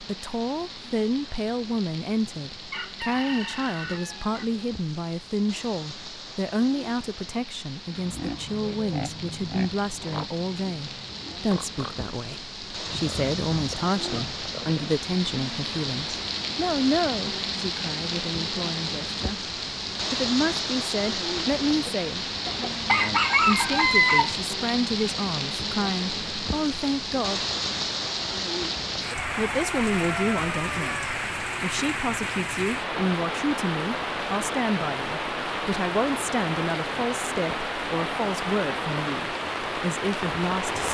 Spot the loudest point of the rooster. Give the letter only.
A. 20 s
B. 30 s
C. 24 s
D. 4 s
C.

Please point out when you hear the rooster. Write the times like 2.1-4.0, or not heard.
2.7-4.5, 22.4-24.4, 29.1-31.1.